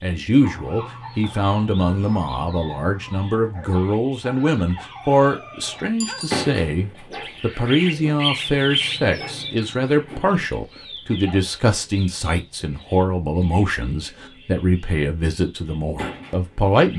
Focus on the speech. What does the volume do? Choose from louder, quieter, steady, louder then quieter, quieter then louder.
steady.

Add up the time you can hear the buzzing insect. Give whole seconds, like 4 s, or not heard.
not heard.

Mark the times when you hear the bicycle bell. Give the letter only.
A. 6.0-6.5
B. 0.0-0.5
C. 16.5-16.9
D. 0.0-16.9
A.